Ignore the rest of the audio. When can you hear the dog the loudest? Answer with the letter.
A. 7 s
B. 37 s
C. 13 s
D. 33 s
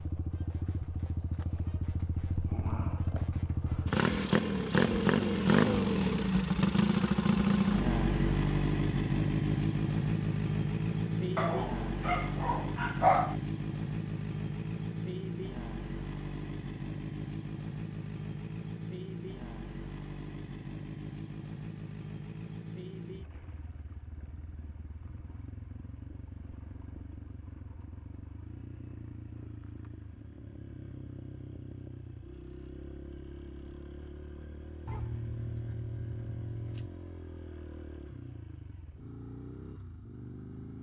C.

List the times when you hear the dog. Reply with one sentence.
The dog can be heard from 11.3 to 13.3 s and from 34.9 to 36.9 s.